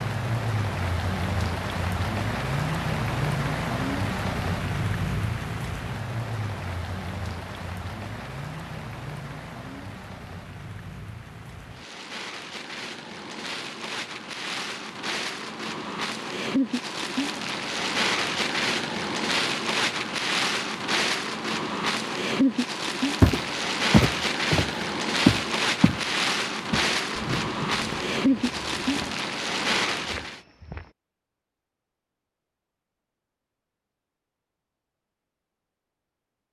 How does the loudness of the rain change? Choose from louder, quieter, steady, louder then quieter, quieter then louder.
quieter then louder.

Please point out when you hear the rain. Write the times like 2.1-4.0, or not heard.
0.0-30.4.